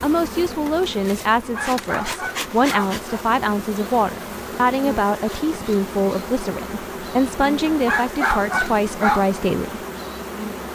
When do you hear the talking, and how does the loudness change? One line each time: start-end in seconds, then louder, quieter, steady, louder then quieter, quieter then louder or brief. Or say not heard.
0.0-9.8 steady.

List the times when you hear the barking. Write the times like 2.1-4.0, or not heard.
1.4-3.2, 7.7-9.2.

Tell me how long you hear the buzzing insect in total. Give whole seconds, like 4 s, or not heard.
11 s.